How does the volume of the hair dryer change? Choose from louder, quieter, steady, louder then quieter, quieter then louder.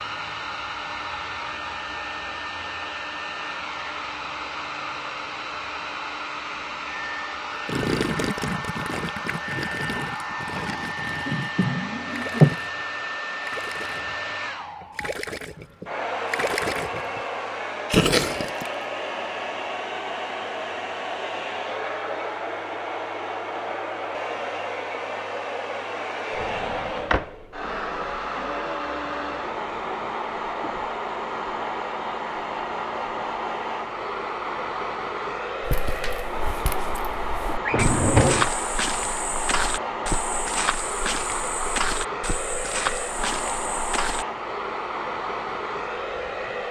steady.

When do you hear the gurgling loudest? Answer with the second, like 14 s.
18 s.